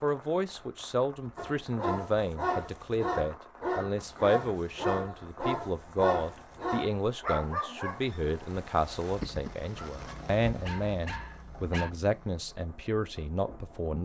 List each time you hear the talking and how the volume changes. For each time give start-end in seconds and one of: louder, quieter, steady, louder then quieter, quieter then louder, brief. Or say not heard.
0.0-14.0 steady.